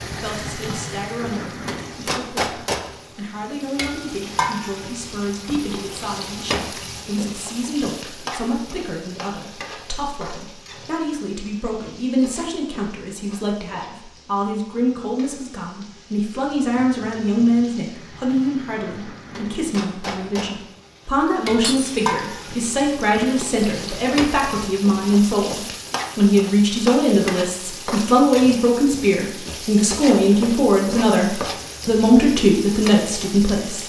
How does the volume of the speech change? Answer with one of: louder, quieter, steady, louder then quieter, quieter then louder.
louder.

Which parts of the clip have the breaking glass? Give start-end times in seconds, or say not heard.
21.6-22.1.